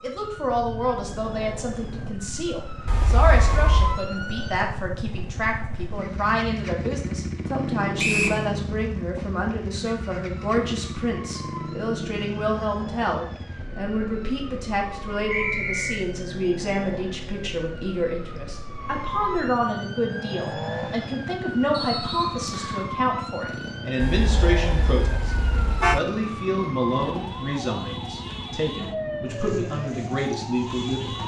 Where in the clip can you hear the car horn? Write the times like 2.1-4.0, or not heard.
2.9-4.0, 24.0-26.0.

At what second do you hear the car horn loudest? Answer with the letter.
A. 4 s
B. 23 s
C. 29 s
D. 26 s
D.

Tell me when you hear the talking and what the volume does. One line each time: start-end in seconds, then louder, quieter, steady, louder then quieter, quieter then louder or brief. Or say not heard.
0.0-31.2 steady.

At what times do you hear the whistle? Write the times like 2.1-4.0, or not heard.
8.0-8.4, 15.3-16.0, 21.7-22.9.